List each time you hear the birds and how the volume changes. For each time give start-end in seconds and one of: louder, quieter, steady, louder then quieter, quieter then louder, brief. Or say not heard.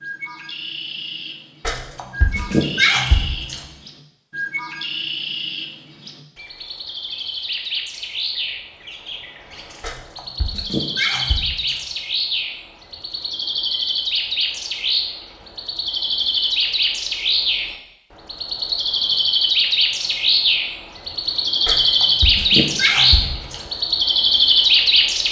0.0-25.2 louder.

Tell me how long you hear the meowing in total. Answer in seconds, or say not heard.
6 s.